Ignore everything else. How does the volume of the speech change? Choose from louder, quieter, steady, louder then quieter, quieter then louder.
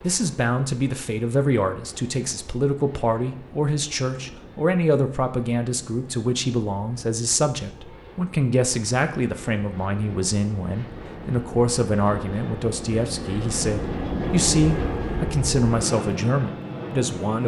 steady.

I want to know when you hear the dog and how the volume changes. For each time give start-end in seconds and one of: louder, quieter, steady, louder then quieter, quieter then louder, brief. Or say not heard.
not heard.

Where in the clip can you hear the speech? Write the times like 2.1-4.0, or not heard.
0.0-17.4.